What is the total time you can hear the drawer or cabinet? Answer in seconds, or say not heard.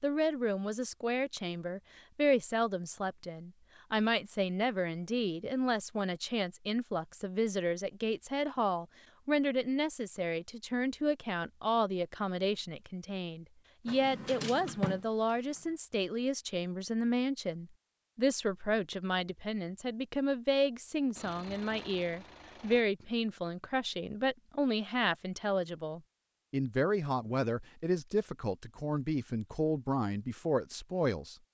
2 s.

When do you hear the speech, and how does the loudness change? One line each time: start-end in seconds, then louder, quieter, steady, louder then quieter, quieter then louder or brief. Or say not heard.
0.0-31.4 steady.